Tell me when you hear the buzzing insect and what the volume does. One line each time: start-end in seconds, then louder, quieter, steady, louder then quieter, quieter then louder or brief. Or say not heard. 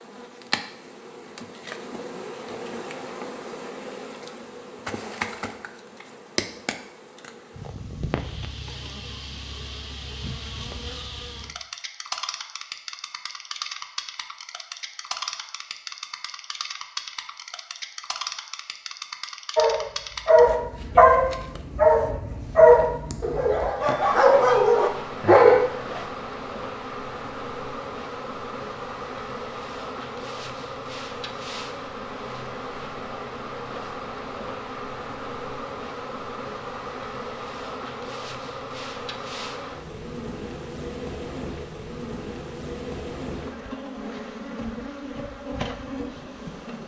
0.0-46.8 steady.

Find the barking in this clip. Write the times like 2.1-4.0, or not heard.
19.6-26.0.